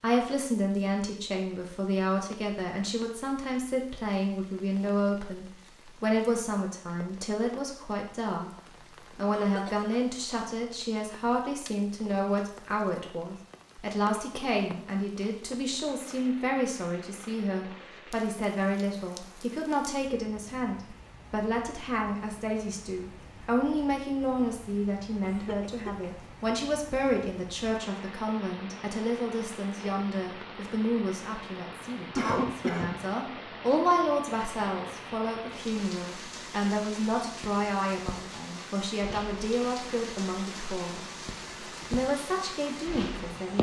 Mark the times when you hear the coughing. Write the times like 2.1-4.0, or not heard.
9.3-9.8, 25.2-26.1, 32.1-33.0.